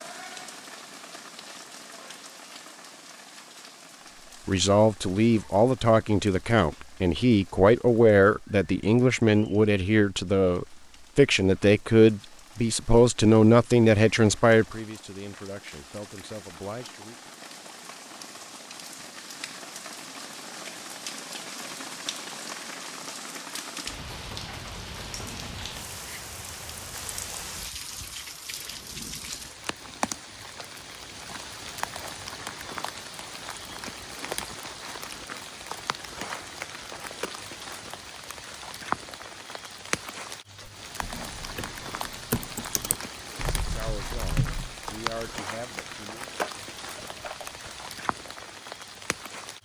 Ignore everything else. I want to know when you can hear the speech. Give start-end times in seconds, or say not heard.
4.5-17.1, 43.5-46.3.